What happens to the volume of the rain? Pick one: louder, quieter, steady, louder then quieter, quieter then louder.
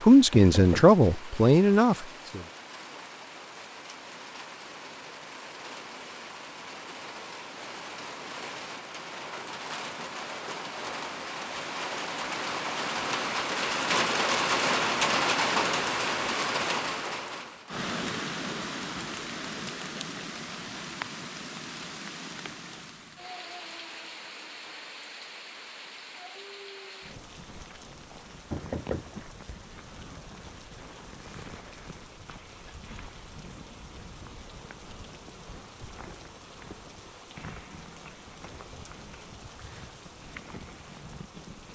louder then quieter.